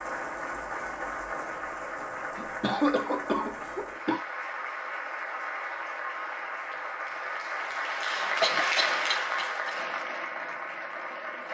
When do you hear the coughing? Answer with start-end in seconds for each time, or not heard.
2.4-4.2, 8.2-9.7.